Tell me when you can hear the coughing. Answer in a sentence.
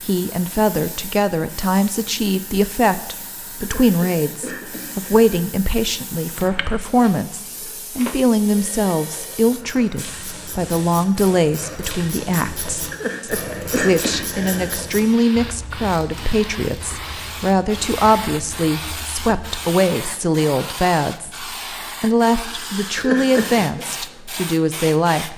You can hear the coughing from 3.6 to 5.4 s, from 12.9 to 14.8 s and from 22.9 to 23.9 s.